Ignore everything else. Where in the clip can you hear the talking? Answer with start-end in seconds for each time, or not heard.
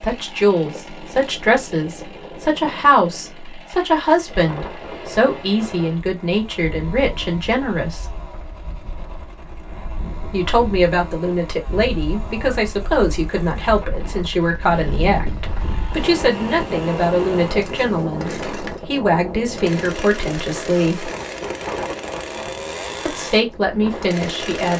0.0-8.1, 10.3-21.1, 23.1-24.7.